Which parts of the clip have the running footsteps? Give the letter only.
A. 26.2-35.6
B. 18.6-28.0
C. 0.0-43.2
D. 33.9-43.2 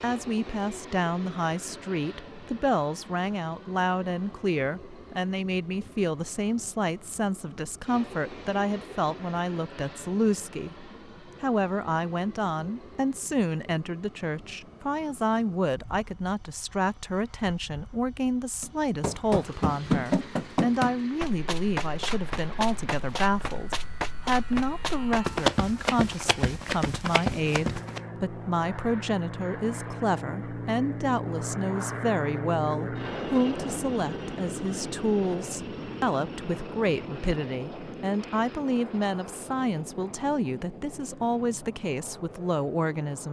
B.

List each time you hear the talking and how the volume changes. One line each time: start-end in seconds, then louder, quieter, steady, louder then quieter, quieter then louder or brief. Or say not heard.
0.0-43.2 steady.